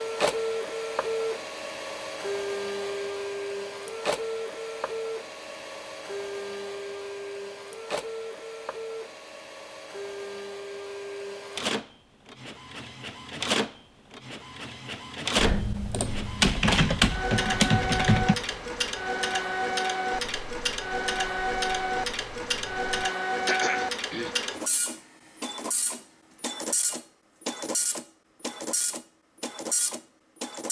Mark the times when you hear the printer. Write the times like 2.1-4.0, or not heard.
0.0-30.6.